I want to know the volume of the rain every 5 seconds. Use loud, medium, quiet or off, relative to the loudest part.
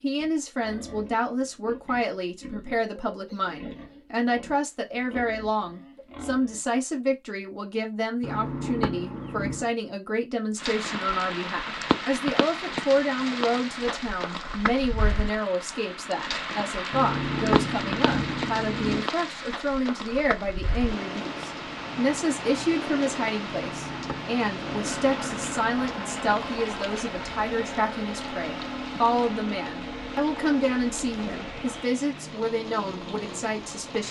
off, off, loud, loud, loud, medium, medium.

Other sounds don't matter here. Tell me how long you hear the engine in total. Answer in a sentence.
The engine can be heard for 9 seconds in total.